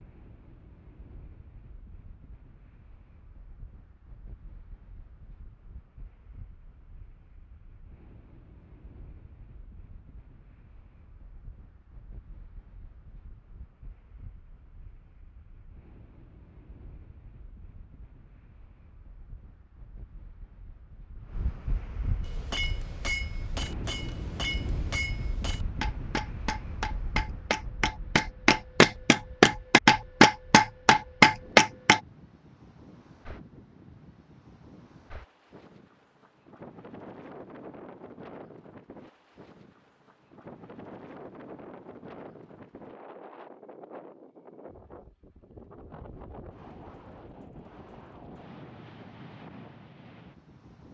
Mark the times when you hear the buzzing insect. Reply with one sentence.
You can't hear the buzzing insect here.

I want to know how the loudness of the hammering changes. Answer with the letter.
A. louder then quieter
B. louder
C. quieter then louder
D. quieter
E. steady
B.